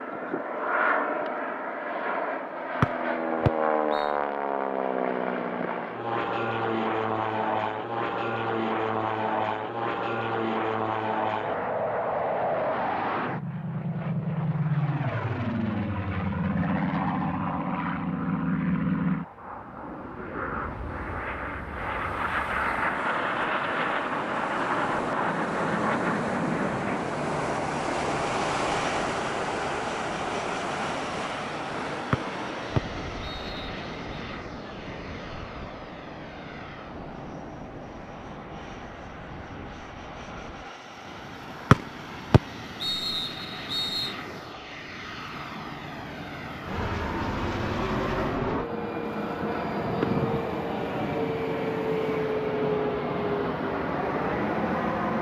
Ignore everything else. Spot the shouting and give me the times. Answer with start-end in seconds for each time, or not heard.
not heard.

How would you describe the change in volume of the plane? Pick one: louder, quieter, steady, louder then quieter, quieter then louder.
quieter then louder.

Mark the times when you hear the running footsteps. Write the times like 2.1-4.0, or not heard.
not heard.